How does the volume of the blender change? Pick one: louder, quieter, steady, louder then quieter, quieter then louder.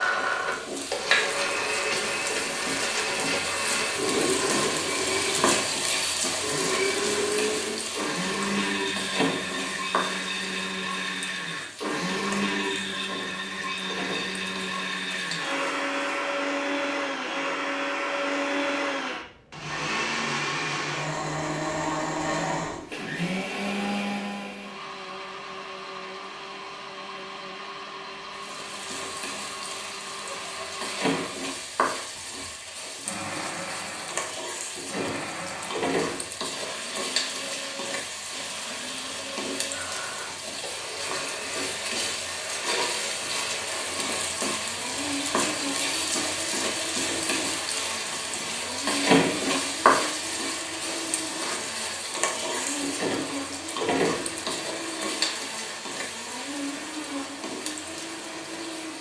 quieter.